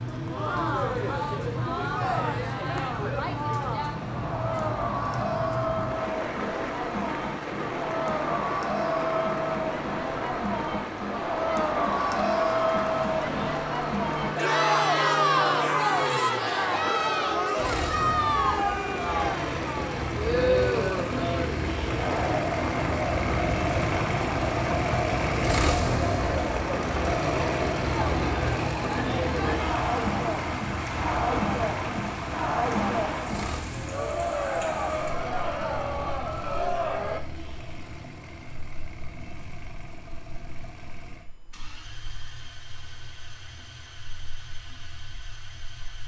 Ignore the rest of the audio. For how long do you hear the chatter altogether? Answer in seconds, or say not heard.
37 s.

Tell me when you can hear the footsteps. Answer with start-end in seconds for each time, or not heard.
not heard.